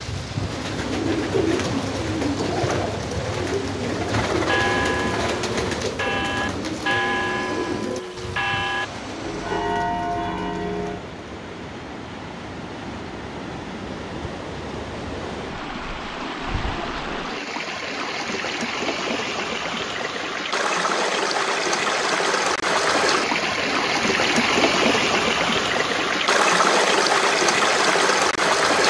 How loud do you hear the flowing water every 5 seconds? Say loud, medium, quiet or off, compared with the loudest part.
quiet, quiet, quiet, medium, loud, loud.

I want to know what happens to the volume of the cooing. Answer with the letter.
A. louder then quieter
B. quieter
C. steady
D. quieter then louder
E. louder
B.